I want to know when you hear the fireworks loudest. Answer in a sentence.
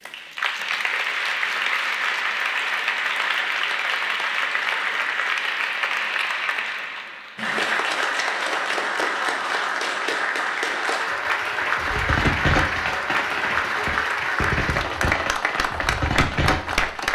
The volume of the fireworks peaks at 12 seconds.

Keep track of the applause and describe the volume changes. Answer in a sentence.
The volume of the applause stays about the same.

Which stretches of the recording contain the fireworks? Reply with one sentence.
The fireworks can be heard from 11.6 to 17.1 s.